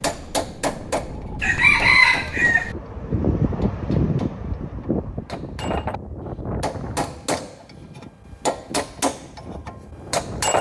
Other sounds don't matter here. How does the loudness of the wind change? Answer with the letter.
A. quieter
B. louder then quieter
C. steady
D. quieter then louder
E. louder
B.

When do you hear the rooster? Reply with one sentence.
You can hear the rooster from 1.4 to 2.8 s.